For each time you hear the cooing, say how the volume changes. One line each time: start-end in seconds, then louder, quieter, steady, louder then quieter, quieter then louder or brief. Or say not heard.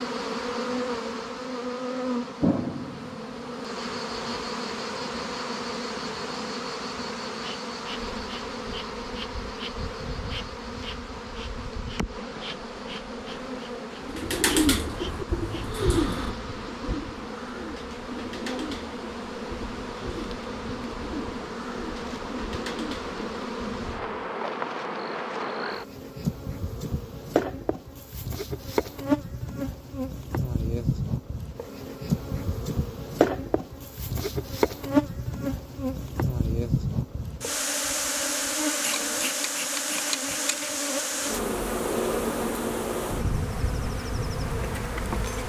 14.1-24.1 quieter.